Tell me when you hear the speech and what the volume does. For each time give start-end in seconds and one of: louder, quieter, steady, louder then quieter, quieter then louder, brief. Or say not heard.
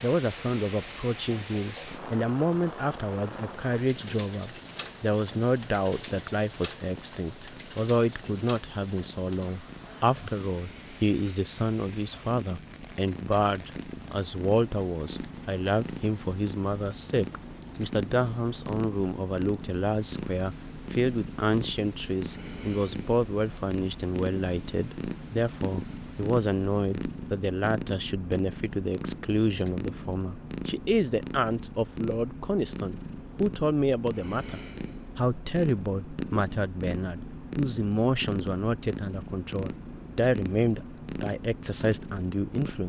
0.0-42.8 steady.